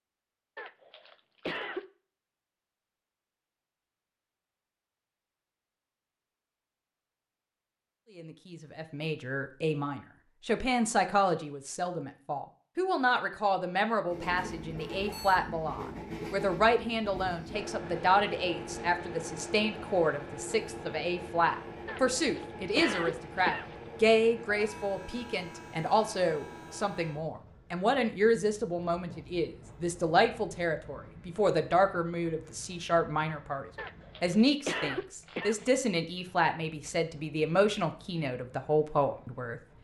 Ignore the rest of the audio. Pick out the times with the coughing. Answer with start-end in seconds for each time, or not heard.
0.6-1.9, 21.9-23.8, 33.8-35.7.